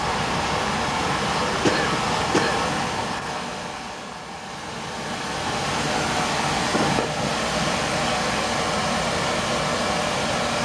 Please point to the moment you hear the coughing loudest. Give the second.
2 s.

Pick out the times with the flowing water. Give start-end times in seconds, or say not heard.
0.0-10.5.